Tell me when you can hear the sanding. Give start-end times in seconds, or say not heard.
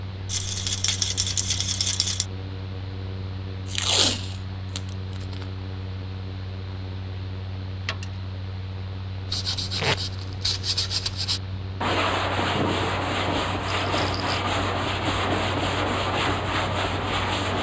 9.3-17.5.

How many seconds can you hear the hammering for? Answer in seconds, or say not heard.
not heard.